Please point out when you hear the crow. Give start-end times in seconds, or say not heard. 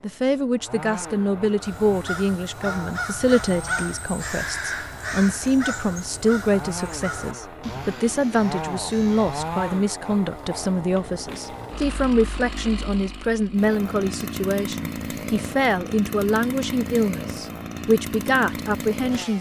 1.6-9.7.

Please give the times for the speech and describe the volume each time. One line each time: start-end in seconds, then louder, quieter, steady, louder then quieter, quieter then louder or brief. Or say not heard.
0.0-19.3 steady.